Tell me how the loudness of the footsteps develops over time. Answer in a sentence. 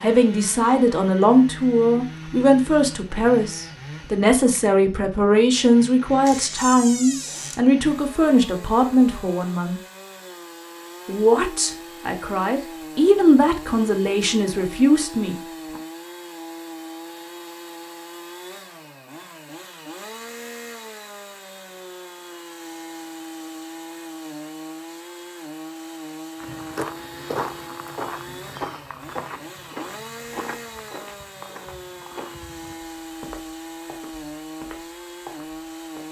The loudness of the footsteps goes down.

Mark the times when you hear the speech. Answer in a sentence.
You can hear the speech from 0.0 to 9.8 s and from 11.1 to 15.3 s.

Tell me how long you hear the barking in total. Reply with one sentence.
The barking can't be heard in this clip.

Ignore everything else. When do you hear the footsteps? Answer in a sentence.
You can hear the footsteps from 26.4 to 36.0 s.